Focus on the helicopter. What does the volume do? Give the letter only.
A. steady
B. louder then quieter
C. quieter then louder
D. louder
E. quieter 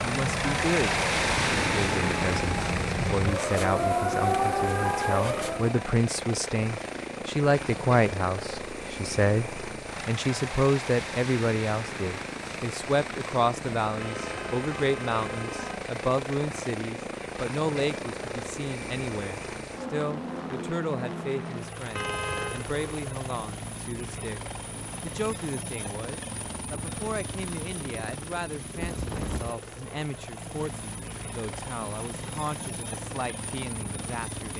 E.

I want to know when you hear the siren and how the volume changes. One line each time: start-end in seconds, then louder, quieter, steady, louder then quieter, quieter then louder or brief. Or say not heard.
0.0-5.8 louder.